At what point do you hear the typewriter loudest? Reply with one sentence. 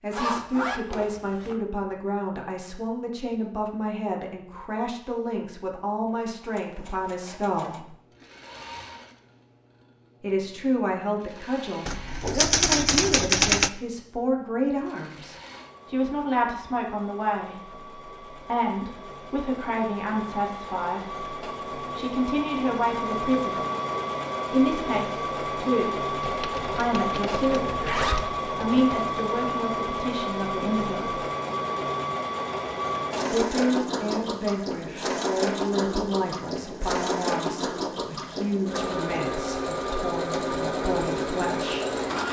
The loudest moment of the typewriter is at 13 seconds.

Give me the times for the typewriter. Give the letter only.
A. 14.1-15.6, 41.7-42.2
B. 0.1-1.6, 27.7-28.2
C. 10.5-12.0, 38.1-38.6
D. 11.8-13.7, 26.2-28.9
D.